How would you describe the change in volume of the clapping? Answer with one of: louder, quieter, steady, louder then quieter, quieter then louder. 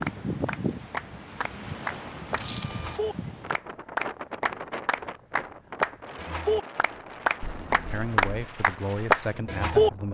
louder.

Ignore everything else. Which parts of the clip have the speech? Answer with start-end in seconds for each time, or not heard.
7.8-10.0.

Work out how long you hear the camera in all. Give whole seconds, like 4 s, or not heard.
2 s.